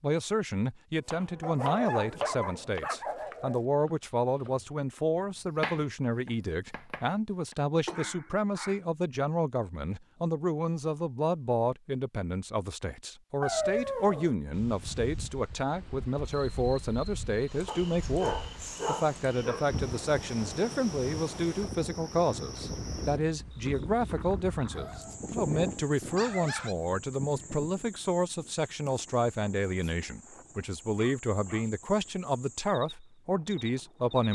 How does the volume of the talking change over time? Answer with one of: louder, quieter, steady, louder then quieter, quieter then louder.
steady.